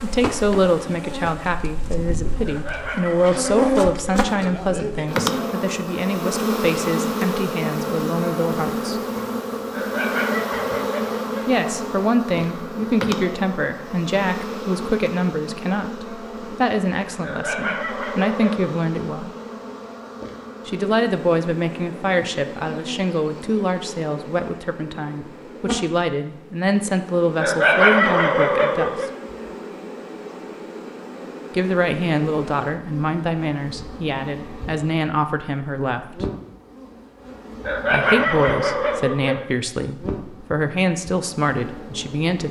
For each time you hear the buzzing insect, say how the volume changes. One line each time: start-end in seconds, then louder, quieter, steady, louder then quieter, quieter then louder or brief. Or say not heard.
0.0-42.4 quieter.